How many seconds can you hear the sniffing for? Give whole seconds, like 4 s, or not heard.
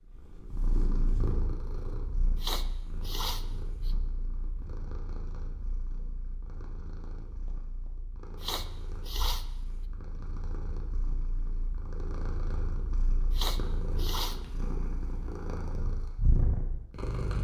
4 s.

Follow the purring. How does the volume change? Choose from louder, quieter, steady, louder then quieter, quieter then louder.
quieter then louder.